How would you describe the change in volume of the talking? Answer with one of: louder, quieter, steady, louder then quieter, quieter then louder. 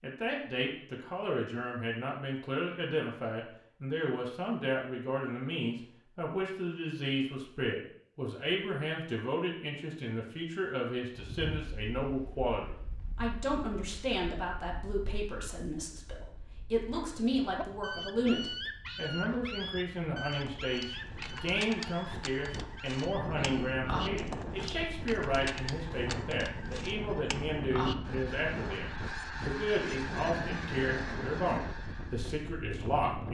steady.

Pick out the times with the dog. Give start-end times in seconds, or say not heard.
16.9-23.8.